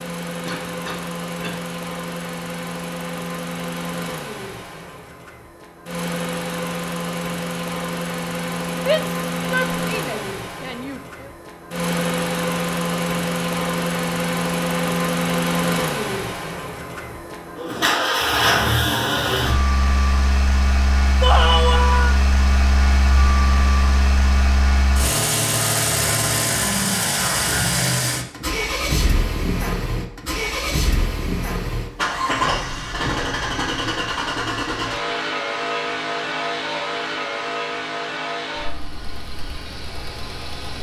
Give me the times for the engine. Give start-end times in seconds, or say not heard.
0.0-40.7.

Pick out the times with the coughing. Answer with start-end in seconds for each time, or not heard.
0.5-1.6.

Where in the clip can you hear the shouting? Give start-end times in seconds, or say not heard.
8.8-11.3, 21.2-22.1.